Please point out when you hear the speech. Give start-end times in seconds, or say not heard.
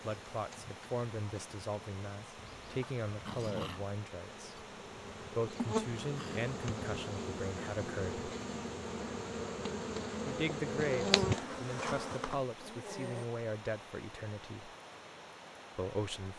0.0-8.3, 10.2-14.7, 15.8-16.3.